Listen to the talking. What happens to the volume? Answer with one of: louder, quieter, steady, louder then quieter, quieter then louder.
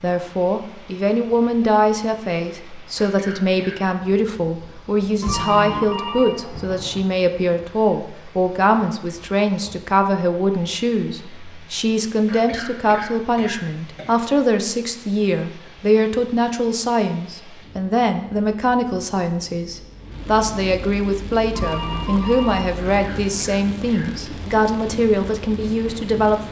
steady.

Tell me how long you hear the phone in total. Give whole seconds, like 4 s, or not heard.
4 s.